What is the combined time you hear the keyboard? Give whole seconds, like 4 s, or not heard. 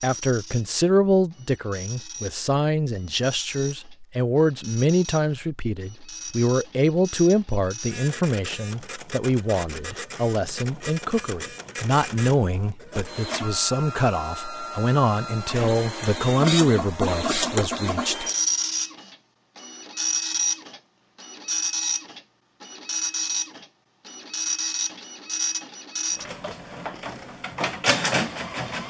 not heard.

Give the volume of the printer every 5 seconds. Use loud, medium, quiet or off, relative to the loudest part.
quiet, medium, medium, loud, loud, loud.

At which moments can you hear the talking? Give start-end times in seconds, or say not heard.
0.0-18.2.